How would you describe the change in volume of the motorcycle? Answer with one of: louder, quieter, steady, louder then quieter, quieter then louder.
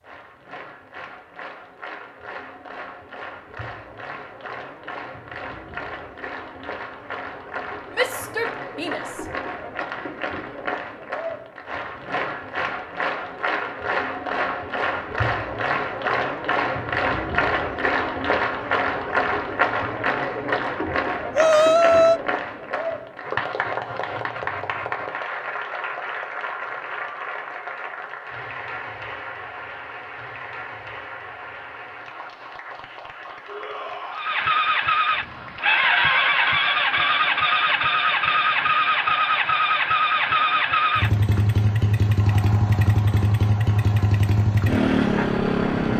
steady.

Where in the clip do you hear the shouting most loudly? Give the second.
22 s.